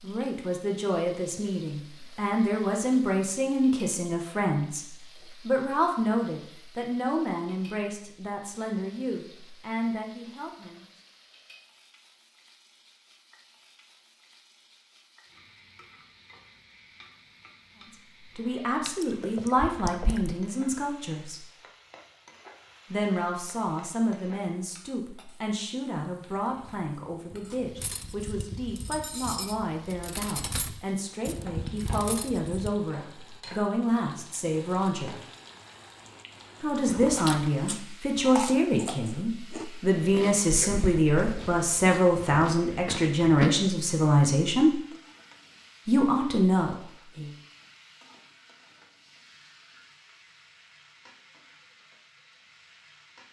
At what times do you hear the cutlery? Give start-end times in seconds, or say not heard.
26.3-32.7.